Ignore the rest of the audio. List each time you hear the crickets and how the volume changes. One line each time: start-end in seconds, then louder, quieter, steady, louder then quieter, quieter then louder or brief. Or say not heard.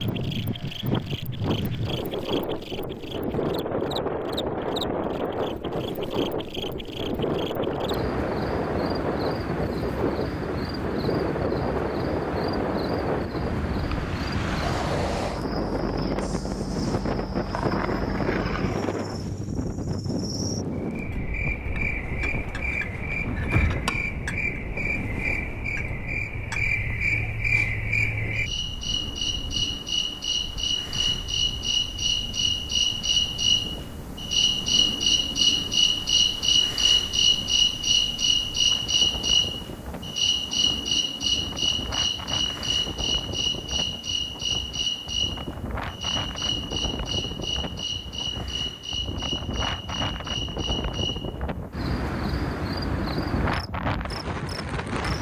0.0-55.1 louder then quieter.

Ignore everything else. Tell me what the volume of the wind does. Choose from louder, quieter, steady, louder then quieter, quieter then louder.
quieter then louder.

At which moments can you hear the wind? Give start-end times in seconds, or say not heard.
0.0-55.1.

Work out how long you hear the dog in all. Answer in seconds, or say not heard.
not heard.